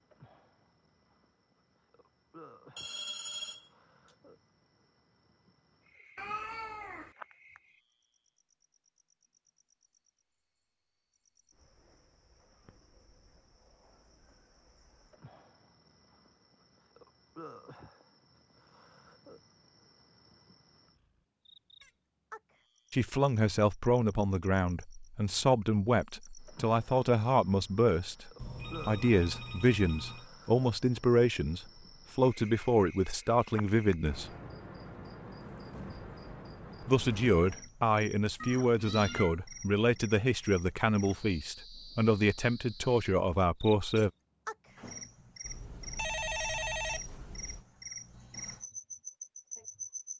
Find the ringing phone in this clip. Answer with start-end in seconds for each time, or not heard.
2.8-3.7, 28.4-30.3, 45.5-47.6.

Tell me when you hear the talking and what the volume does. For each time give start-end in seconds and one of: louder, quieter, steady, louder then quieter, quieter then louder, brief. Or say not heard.
22.9-34.3 steady
36.8-44.1 steady.